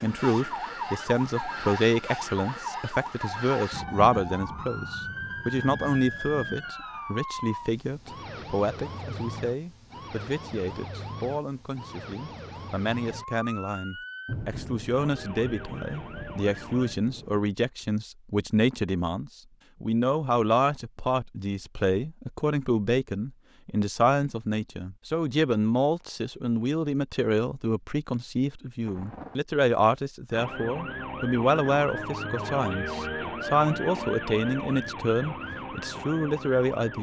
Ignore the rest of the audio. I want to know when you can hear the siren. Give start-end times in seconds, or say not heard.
0.0-16.9, 30.3-36.9.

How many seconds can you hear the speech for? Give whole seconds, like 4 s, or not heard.
37 s.